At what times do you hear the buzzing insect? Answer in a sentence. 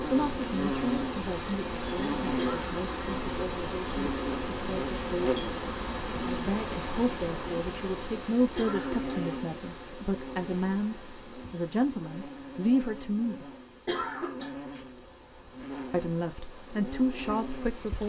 The buzzing insect can be heard from 0.0 to 18.0 s.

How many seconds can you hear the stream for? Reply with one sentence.
You can hear the stream for 18 seconds altogether.